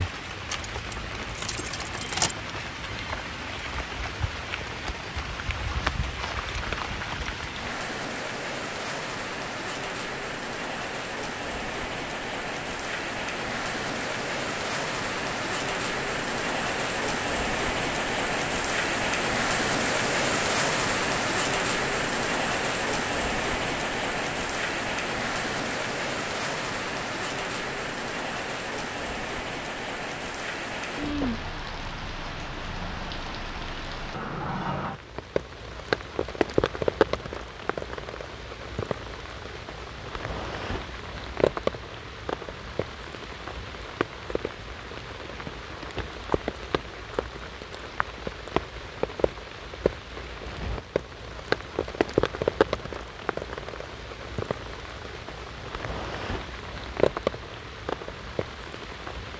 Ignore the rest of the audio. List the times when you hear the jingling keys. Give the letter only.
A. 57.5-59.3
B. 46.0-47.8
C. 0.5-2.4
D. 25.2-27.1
C.